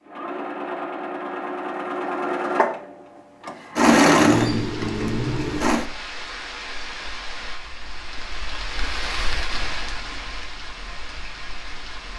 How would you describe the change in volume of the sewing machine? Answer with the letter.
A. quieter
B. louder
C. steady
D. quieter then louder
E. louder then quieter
E.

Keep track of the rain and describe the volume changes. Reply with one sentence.
The volume of the rain goes up, then down.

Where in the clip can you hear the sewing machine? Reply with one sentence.
You can hear the sewing machine from 0.1 to 5.8 s.